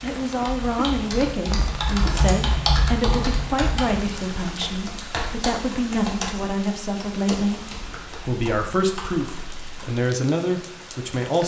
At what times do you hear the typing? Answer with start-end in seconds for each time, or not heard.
0.1-10.0.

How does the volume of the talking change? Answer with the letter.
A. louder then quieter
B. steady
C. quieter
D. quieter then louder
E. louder
B.